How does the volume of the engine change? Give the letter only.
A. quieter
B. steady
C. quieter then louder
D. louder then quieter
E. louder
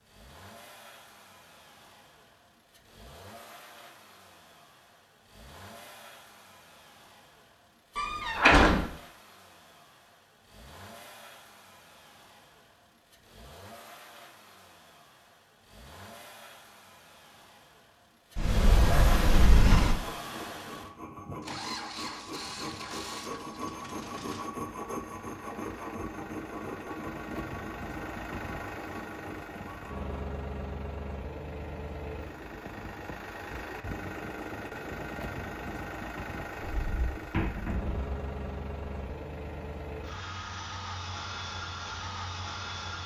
E.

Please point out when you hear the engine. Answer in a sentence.
You can hear the engine from 0.0 to 43.0 s.